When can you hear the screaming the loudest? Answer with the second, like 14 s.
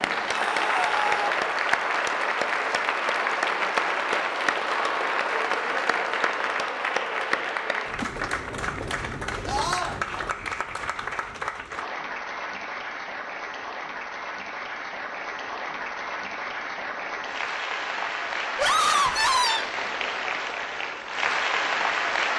19 s.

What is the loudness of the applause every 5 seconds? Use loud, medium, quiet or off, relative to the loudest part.
loud, loud, medium, medium, loud.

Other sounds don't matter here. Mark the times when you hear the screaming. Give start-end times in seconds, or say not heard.
0.3-1.3, 9.4-9.9, 18.6-19.6.